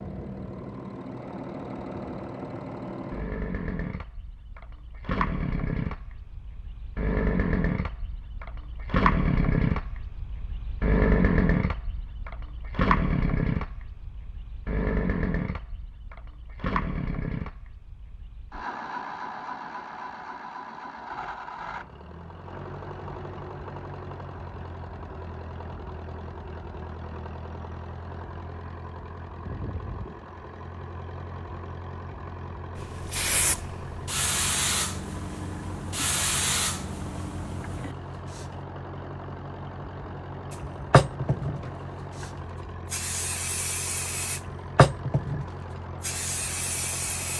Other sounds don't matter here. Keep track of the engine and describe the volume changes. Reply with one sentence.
The volume of the engine goes down.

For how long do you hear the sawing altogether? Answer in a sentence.
The sawing can't be heard in this clip.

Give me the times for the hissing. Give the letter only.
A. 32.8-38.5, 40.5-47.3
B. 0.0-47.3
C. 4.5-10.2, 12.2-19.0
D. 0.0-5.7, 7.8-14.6
A.